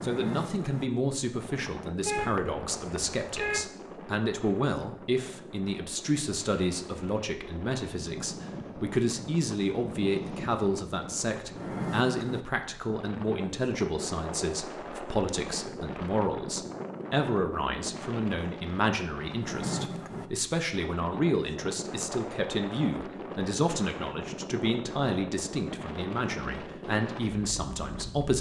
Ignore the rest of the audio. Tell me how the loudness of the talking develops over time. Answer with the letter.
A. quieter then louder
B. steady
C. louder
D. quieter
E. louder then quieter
B.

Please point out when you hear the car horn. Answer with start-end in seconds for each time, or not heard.
2.0-3.6.